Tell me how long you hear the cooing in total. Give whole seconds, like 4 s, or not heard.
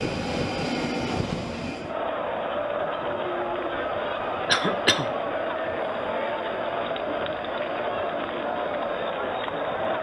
not heard.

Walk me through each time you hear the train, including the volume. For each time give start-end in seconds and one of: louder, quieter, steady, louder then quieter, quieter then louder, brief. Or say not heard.
0.0-9.9 quieter.